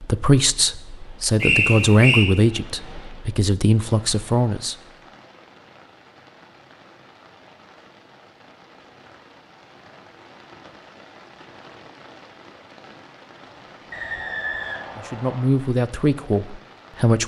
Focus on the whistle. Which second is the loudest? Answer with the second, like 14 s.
2 s.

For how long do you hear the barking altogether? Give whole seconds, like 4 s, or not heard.
not heard.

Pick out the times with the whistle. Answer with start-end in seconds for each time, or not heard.
1.4-2.2, 13.9-15.6.